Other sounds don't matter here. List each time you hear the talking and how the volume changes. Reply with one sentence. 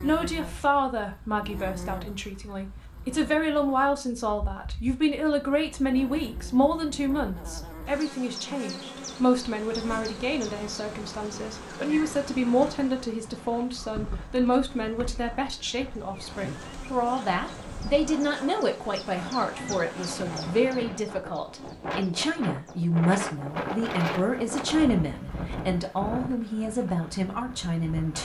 The talking can be heard from 0.0 to 28.2 s, at a steady volume.